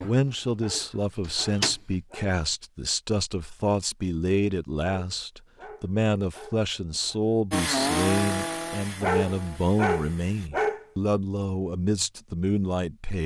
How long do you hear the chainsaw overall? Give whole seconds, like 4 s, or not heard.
3 s.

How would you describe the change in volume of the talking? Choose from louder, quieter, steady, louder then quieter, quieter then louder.
steady.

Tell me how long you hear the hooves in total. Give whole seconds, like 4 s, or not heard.
not heard.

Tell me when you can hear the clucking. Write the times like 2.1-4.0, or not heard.
0.0-1.8.